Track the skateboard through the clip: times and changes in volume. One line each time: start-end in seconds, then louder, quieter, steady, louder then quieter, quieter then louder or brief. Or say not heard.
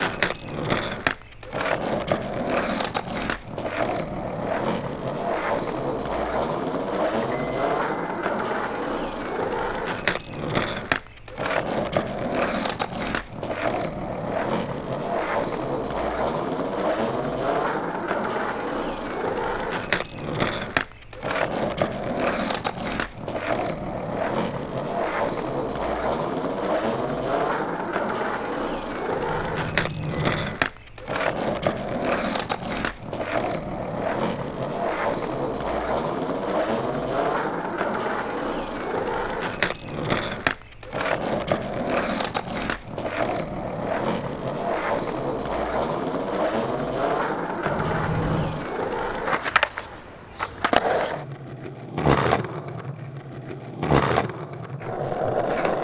0.0-55.7 steady.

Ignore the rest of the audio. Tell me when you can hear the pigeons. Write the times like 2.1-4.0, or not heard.
not heard.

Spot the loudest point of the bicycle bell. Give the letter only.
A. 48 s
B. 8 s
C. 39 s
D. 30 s
A.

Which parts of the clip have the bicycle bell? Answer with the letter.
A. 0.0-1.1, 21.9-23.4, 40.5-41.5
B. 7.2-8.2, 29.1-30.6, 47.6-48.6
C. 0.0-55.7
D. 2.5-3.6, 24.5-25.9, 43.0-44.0
B.